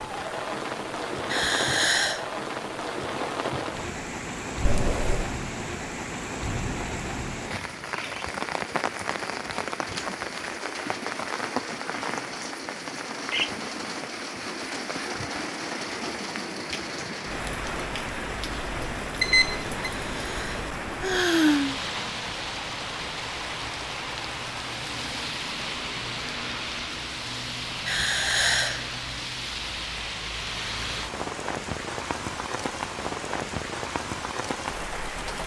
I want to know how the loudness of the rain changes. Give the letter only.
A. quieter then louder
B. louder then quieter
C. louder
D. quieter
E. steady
E.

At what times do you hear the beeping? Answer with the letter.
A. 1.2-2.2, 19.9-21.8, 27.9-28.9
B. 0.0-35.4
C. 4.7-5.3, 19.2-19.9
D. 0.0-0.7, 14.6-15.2
C.